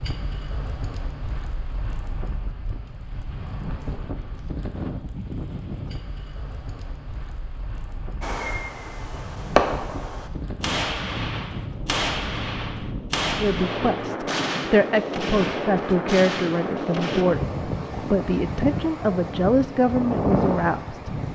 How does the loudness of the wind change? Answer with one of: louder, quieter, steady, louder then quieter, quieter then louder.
louder.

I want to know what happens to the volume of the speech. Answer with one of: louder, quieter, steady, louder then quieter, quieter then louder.
steady.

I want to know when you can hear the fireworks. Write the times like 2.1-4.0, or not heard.
8.2-17.2.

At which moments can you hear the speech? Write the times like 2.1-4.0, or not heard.
13.4-21.1.